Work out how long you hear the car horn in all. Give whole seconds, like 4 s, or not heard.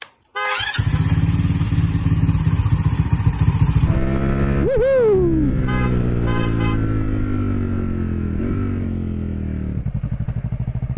2 s.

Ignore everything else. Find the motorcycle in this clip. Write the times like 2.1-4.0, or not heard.
0.0-10.9.